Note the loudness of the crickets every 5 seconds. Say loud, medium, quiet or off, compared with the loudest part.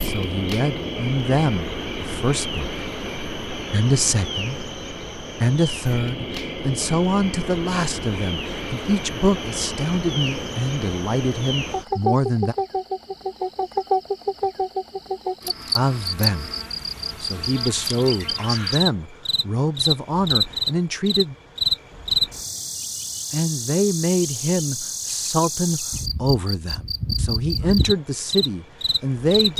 medium, medium, loud, loud, loud, loud.